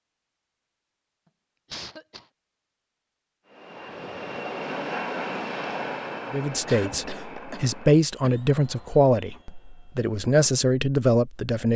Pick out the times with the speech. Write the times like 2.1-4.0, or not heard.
6.3-11.7.